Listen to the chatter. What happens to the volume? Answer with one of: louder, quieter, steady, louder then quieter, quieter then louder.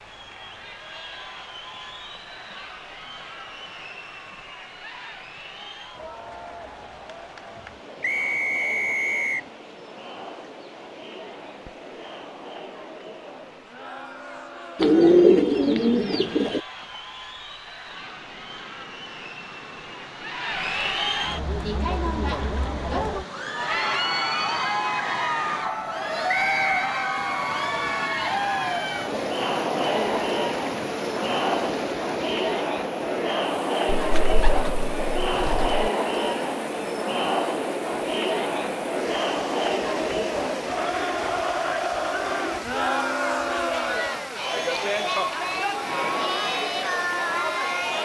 louder.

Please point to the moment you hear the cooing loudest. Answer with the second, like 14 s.
15 s.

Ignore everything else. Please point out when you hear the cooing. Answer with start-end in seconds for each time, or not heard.
14.8-16.6, 33.9-35.9.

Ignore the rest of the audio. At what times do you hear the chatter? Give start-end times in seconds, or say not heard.
0.0-48.0.